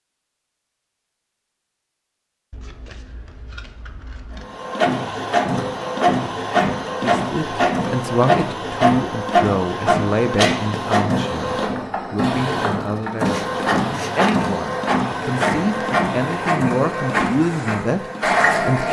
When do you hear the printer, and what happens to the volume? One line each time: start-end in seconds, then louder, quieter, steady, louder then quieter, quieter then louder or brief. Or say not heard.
4.3-18.8 steady.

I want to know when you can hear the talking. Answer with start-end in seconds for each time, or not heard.
7.0-18.8.